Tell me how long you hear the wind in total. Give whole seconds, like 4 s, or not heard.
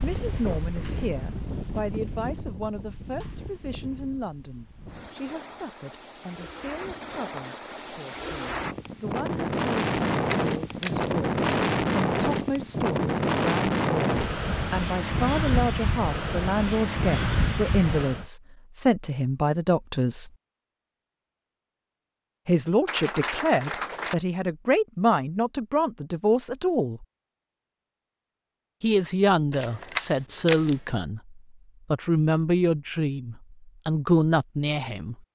18 s.